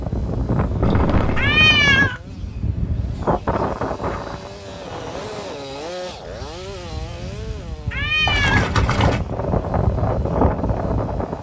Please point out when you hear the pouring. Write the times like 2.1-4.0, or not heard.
0.8-1.5, 8.2-9.2.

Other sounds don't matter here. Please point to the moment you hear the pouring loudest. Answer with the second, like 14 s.
9 s.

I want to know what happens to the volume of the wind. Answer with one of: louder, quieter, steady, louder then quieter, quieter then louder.
quieter then louder.